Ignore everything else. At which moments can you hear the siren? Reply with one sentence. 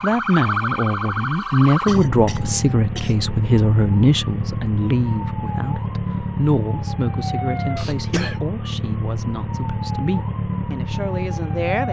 The siren can be heard from 0.0 to 11.8 s.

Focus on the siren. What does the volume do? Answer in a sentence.
The volume of the siren stays about the same.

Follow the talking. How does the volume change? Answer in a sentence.
The loudness of the talking goes down.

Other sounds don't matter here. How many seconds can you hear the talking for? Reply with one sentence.
The talking can be heard for 12 seconds in total.